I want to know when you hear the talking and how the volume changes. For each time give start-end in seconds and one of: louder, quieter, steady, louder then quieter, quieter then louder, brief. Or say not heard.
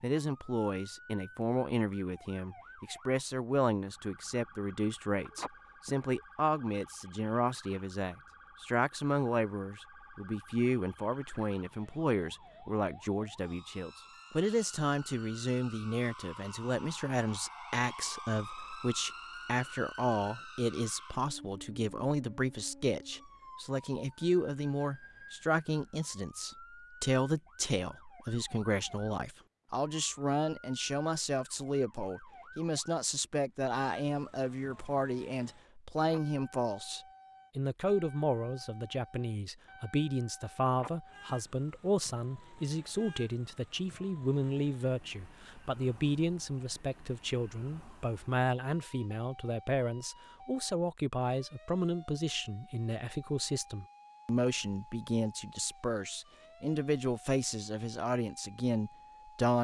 0.0-59.6 steady.